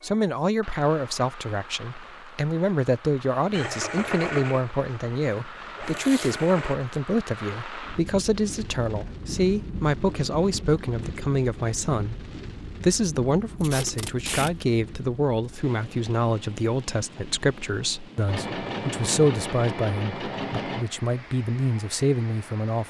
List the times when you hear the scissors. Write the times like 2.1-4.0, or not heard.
not heard.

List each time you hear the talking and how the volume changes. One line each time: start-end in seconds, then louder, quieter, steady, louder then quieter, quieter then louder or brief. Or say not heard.
0.0-22.8 steady.